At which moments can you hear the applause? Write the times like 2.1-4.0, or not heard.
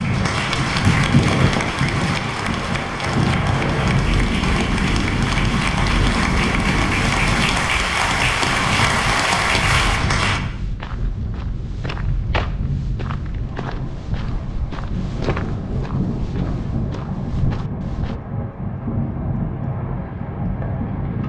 0.0-10.4.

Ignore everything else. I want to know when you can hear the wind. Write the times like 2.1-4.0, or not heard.
0.0-21.2.